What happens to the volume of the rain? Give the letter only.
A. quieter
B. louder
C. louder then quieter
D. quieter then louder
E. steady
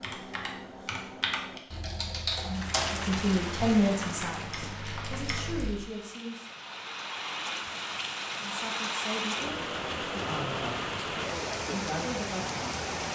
D.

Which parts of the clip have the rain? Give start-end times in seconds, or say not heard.
2.4-13.1.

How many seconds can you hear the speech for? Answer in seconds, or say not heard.
8 s.